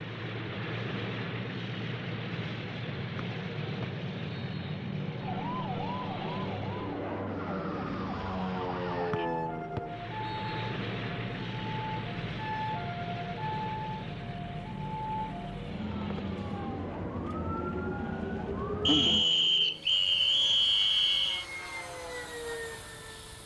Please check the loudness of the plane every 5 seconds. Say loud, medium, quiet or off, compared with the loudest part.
loud, loud, loud, medium, medium.